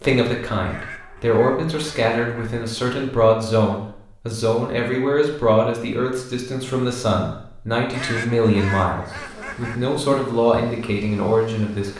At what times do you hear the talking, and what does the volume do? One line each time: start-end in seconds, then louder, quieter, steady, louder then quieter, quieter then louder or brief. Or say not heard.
0.0-11.9 steady.